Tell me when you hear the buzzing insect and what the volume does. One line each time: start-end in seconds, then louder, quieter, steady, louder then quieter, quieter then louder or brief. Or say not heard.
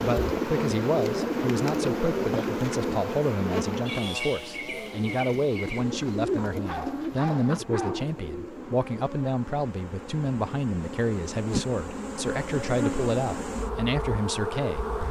0.0-15.0 quieter then louder.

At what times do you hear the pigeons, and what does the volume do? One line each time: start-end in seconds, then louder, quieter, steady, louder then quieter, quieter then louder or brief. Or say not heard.
0.0-8.8 quieter then louder.